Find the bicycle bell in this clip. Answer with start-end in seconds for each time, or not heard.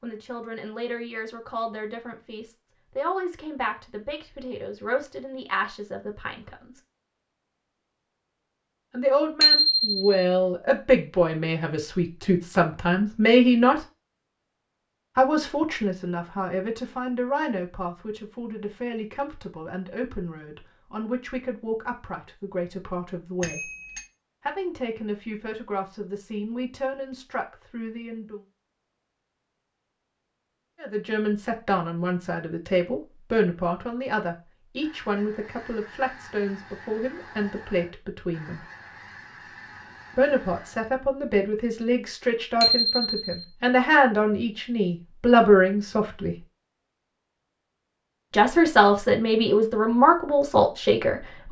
9.4-10.2, 23.4-24.1, 42.6-43.5.